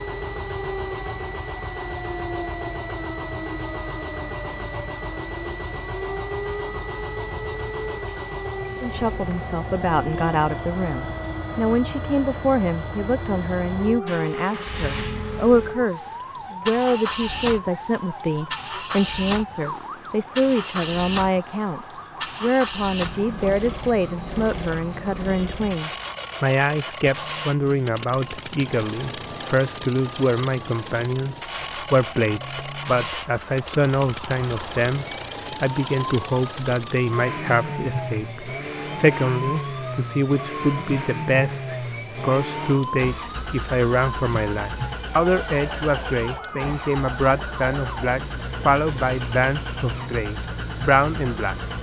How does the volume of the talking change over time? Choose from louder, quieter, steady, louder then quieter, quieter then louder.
steady.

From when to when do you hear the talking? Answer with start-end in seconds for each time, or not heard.
8.8-51.5.